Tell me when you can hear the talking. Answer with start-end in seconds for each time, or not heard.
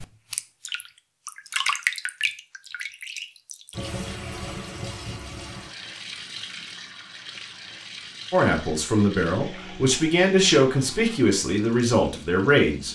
8.3-12.9.